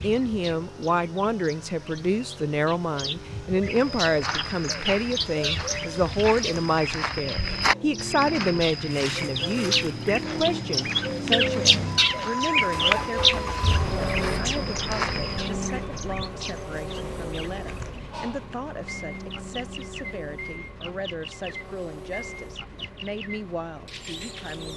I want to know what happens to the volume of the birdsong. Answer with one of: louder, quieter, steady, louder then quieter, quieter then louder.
louder then quieter.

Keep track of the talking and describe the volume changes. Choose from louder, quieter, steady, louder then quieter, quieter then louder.
quieter.